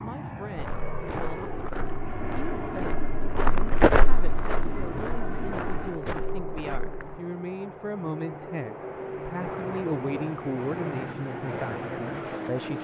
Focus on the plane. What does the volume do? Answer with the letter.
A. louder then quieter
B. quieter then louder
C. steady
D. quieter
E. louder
C.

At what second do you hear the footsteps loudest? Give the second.
4 s.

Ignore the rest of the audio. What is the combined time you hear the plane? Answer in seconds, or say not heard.
13 s.